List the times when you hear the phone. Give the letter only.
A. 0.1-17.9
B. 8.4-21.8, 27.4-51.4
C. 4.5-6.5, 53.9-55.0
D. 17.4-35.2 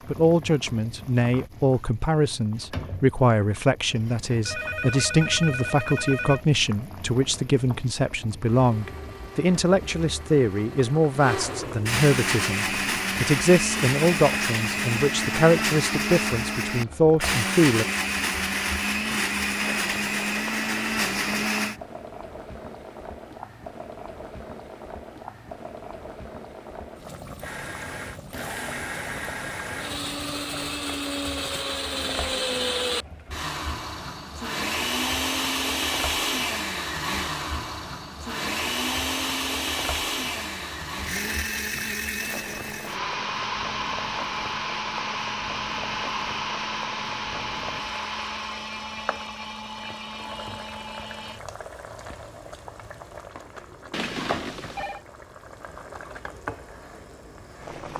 C.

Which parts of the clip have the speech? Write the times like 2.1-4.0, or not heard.
0.1-17.9.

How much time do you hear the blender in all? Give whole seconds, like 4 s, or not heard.
37 s.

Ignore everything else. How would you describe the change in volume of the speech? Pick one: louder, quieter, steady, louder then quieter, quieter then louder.
steady.